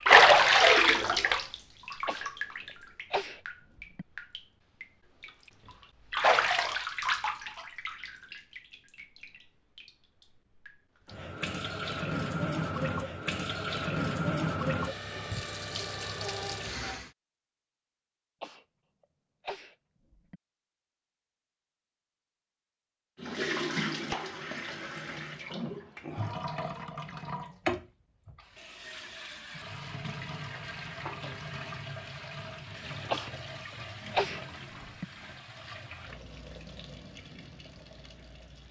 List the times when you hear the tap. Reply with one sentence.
The tap can be heard from 0.0 to 17.1 s and from 23.2 to 38.6 s.